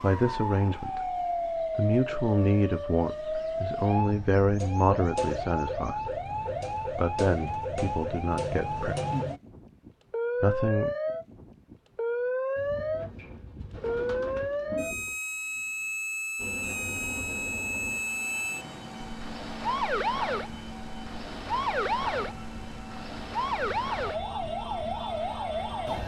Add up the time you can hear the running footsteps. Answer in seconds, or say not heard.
not heard.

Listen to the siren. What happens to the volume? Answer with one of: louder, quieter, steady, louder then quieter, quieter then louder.
steady.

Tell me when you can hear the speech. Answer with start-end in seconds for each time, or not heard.
0.0-6.2, 6.8-8.9, 10.4-10.9.